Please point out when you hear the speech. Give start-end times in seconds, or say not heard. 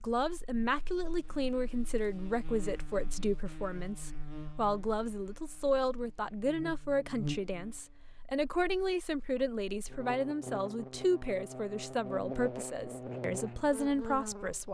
0.0-14.6.